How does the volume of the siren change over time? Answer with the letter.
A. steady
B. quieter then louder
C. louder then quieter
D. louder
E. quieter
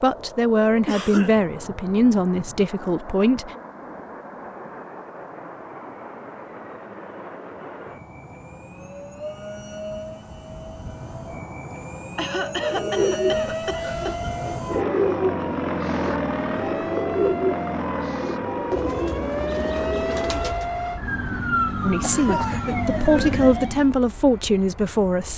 D.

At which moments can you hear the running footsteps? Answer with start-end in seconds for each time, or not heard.
not heard.